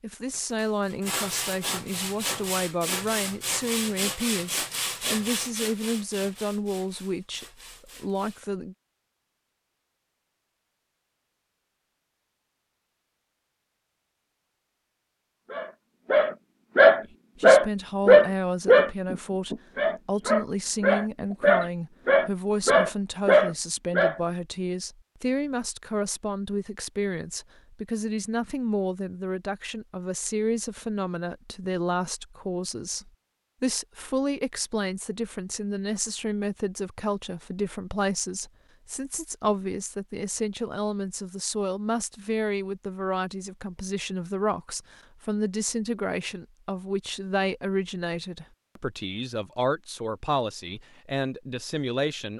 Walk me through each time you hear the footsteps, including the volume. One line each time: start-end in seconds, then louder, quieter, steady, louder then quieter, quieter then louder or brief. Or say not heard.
not heard.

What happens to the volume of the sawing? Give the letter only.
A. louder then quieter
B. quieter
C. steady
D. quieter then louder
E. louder
B.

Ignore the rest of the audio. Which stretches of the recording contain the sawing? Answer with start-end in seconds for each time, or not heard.
0.3-8.4.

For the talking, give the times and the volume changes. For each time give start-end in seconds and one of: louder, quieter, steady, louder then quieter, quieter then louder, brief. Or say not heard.
0.0-8.8 steady
17.4-52.3 steady.